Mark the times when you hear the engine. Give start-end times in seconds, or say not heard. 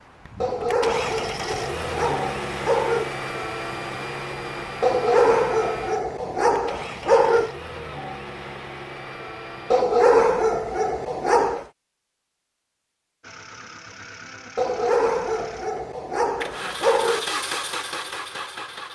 0.0-9.8, 13.2-18.8.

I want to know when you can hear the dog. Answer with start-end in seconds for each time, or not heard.
0.4-3.1, 4.8-7.5, 9.7-11.7, 14.6-17.2.